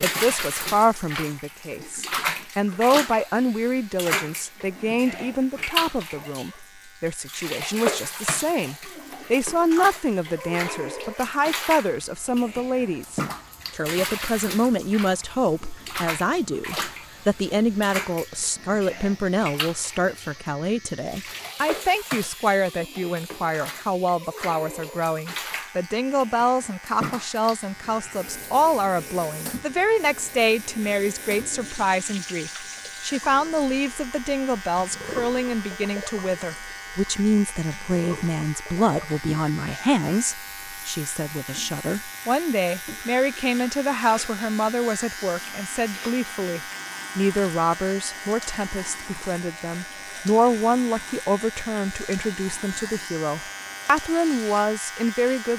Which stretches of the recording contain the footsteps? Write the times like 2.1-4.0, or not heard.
not heard.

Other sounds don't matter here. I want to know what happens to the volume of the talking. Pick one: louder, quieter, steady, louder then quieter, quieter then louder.
steady.